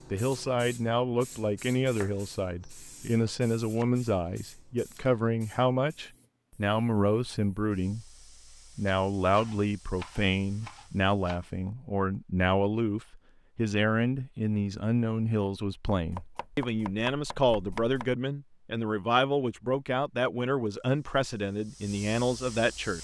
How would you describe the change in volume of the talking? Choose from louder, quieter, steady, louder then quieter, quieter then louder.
steady.